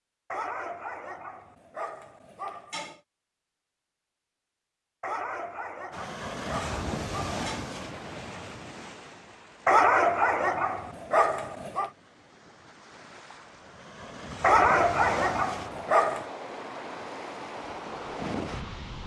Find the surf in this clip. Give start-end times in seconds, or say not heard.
5.9-19.0.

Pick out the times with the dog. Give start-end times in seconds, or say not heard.
0.3-3.0, 5.0-7.7, 9.7-11.9, 14.4-16.2.